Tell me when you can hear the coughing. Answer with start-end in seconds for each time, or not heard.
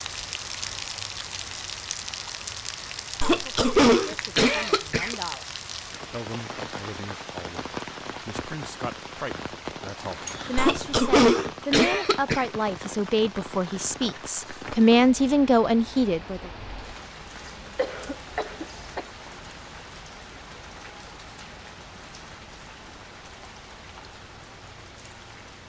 3.2-5.2, 10.6-12.4, 17.4-19.1.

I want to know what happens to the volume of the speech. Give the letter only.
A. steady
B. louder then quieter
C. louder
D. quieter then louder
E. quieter
C.